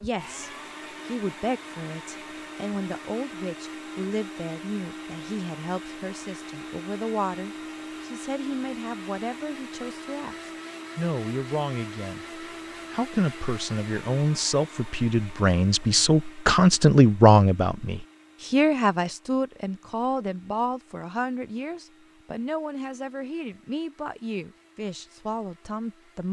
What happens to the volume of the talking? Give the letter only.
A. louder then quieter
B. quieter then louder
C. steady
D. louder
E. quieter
A.